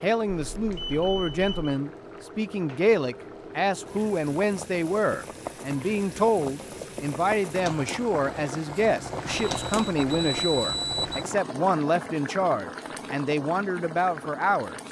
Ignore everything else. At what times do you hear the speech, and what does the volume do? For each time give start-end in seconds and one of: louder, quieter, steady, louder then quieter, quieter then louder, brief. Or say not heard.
0.0-14.8 steady.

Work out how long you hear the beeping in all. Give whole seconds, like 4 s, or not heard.
3 s.